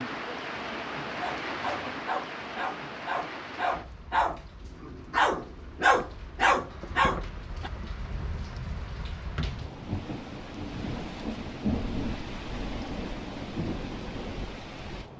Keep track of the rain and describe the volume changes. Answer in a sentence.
The volume of the rain goes down, then up.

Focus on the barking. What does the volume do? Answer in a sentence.
The loudness of the barking goes up.